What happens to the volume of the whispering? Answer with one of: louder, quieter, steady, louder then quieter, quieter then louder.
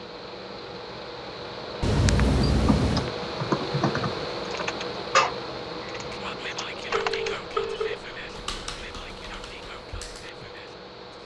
quieter.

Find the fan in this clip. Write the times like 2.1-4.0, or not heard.
0.0-11.2.